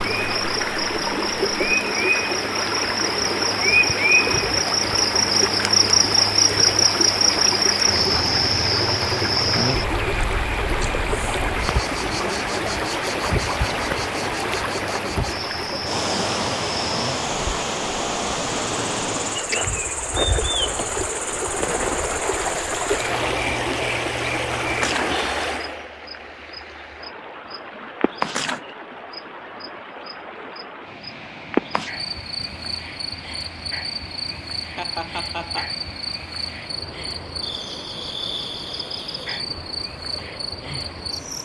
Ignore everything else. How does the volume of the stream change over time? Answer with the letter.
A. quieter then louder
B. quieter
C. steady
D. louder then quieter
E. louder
B.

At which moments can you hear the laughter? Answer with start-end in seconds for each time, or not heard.
34.8-35.7.